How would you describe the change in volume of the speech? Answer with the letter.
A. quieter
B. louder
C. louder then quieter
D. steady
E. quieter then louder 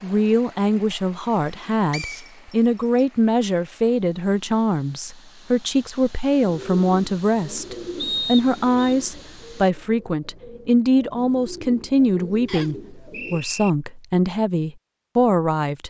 D.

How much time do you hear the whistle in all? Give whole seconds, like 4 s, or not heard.
3 s.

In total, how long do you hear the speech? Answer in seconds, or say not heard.
16 s.